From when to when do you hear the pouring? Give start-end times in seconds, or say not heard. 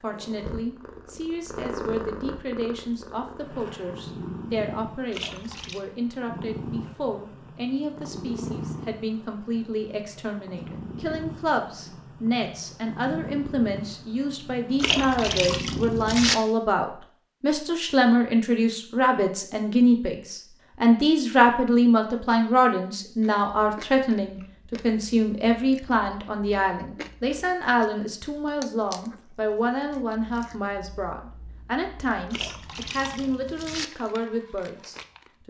5.1-5.8, 14.8-16.4, 32.3-33.9.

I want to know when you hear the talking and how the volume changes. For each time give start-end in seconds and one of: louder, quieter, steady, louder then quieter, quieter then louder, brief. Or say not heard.
0.0-35.4 louder then quieter.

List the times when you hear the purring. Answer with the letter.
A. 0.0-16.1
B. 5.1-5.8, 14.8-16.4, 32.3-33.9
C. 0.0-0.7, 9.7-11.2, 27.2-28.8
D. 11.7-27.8
A.